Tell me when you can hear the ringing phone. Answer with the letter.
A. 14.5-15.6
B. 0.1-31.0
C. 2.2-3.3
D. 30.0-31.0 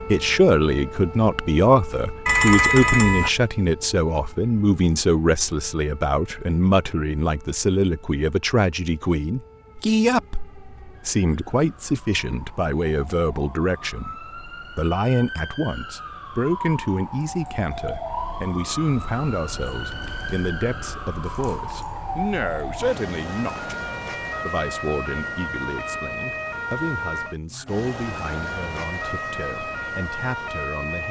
C.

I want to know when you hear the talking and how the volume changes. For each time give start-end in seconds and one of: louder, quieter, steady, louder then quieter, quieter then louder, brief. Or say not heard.
0.1-31.0 quieter.